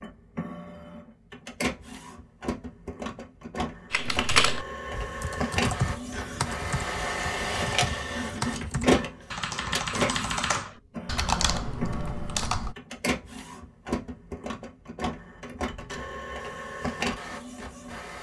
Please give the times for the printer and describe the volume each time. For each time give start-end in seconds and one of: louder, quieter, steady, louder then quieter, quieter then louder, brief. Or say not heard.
0.0-18.1 louder then quieter.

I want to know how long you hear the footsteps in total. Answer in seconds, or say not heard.
not heard.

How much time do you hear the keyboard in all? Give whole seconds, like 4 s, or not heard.
9 s.